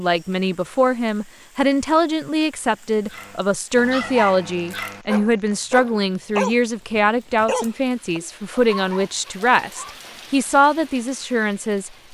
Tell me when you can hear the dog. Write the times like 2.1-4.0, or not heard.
3.1-10.1.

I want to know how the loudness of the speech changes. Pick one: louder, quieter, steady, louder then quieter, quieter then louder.
steady.